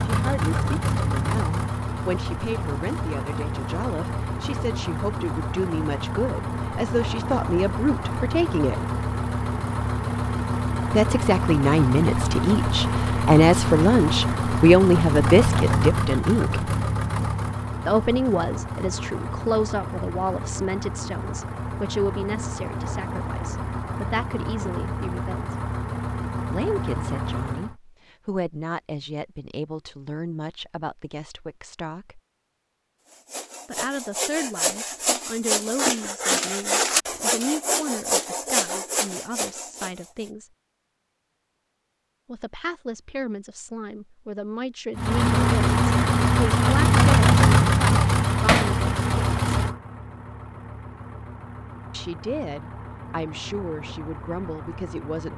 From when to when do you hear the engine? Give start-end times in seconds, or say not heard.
0.0-27.8, 45.0-55.3.